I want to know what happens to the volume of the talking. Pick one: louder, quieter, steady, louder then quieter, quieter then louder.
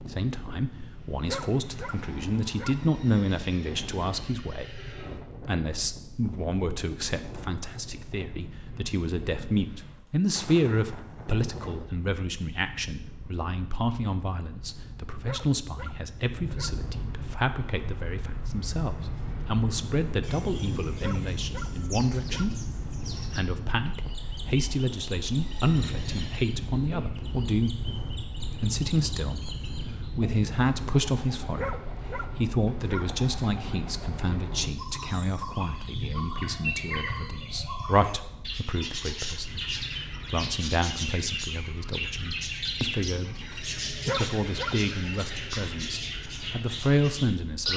steady.